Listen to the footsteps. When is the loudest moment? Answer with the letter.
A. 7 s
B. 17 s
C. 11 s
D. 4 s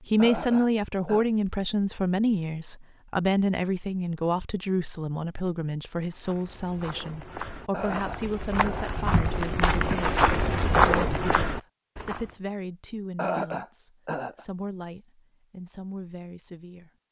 C.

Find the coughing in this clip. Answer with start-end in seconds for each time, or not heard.
0.1-1.2, 7.7-9.3, 13.2-14.4.